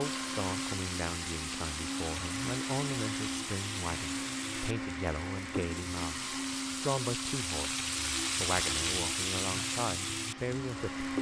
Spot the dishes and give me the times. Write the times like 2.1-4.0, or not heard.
not heard.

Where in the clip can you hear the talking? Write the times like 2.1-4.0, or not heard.
0.0-11.1.